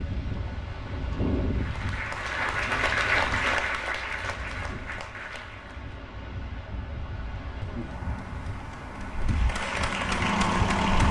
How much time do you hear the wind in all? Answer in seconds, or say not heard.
11 s.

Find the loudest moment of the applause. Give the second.
3 s.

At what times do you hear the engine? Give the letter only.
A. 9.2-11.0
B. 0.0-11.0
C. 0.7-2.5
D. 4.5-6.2
A.